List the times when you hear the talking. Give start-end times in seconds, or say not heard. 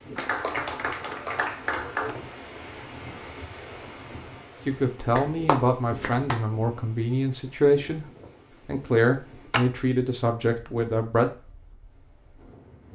4.7-8.1, 8.7-11.3.